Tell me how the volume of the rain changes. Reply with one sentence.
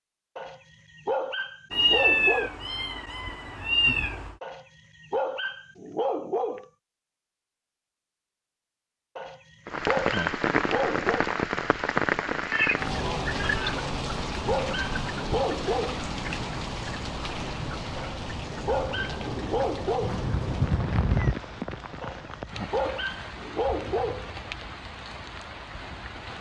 The volume of the rain goes down.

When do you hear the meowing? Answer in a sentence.
The meowing can be heard from 1.7 to 4.3 s, from 12.4 to 13.8 s and from 20.0 to 21.4 s.